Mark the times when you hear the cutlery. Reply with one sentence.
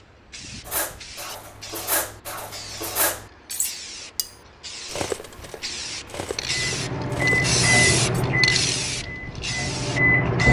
You can hear the cutlery from 0.7 to 8.2 s.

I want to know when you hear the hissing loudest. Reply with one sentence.
The volume of the hissing peaks at 8 seconds.